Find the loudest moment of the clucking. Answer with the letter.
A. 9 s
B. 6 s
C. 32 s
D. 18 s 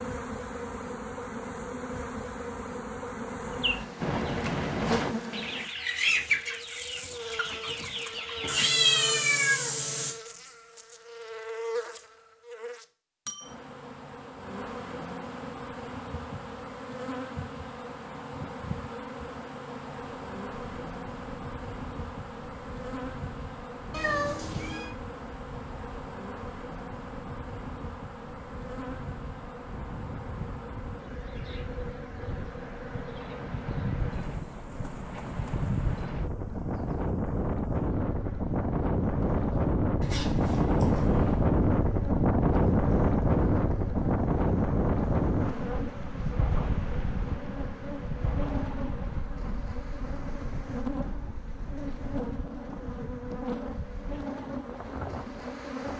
B.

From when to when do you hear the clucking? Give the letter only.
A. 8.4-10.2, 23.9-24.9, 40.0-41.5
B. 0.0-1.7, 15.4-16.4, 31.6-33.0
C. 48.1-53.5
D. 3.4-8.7
D.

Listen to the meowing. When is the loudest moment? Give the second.
9 s.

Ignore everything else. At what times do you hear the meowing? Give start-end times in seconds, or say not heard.
8.4-10.2, 23.9-24.9, 40.0-41.5.